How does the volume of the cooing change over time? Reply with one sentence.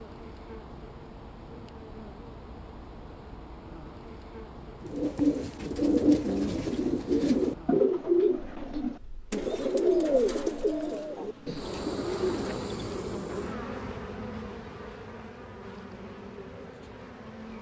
The loudness of the cooing goes down.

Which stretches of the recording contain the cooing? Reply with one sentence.
You can hear the cooing from 4.8 to 12.8 s.